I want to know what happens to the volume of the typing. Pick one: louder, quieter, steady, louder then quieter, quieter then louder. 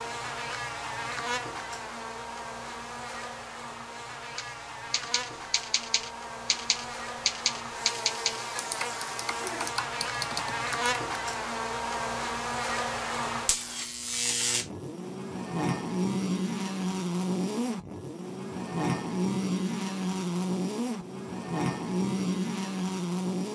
louder then quieter.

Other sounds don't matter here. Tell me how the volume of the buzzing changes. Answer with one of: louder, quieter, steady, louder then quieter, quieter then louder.
louder.